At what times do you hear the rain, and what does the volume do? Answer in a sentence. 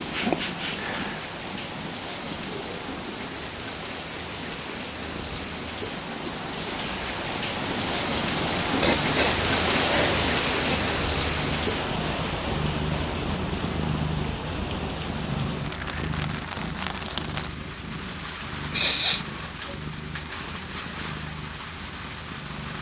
The rain can be heard from 0.0 to 22.7 s, getting louder then quieter.